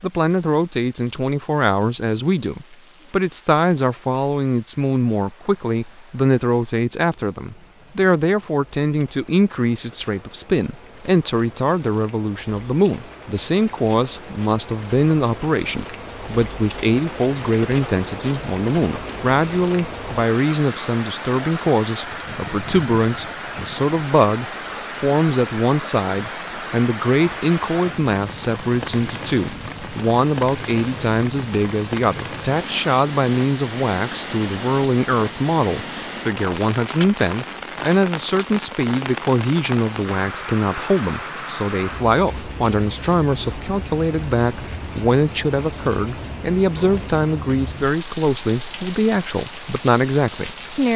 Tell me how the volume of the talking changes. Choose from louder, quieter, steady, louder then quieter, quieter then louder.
steady.